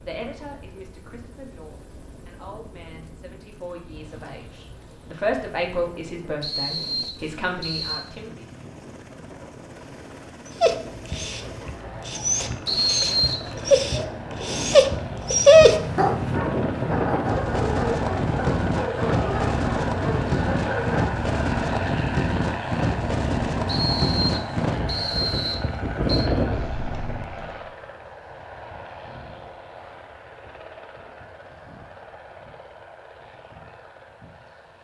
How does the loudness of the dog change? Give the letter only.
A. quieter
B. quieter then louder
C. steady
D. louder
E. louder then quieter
E.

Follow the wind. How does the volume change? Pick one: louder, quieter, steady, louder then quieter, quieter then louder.
louder.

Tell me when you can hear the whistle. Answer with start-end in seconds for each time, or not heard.
6.4-8.1, 12.7-13.4, 23.6-26.3.